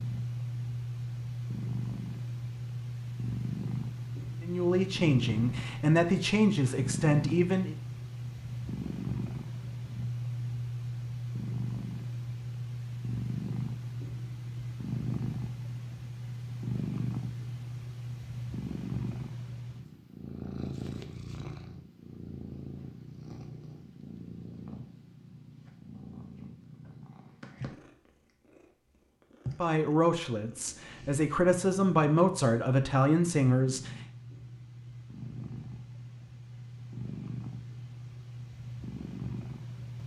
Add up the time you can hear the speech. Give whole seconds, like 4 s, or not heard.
8 s.